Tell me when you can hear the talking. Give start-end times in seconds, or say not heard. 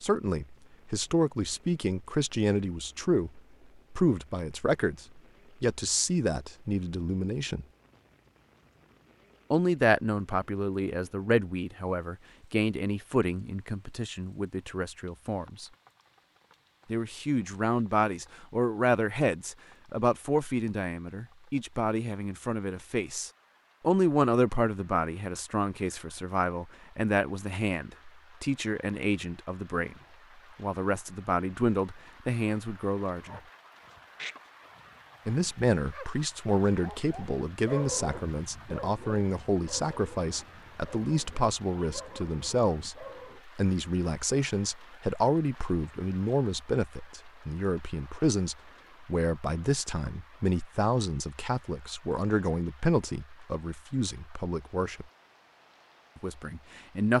0.0-7.7, 9.5-15.7, 16.9-29.9, 30.6-33.4, 35.2-55.0, 56.1-57.1.